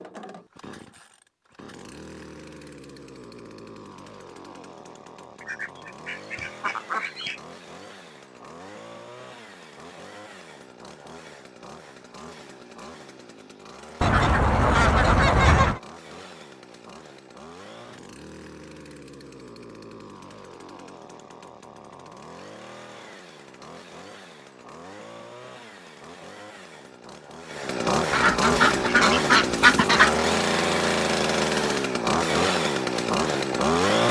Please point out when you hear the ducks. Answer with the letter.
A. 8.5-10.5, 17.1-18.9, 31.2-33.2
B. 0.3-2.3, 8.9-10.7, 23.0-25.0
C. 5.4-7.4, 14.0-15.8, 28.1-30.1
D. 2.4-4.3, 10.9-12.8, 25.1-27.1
C.